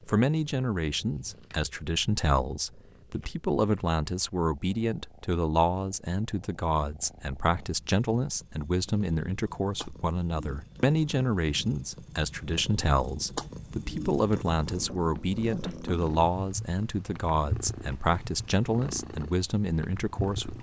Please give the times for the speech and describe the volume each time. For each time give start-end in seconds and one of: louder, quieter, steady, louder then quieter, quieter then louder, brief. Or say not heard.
0.1-20.5 steady.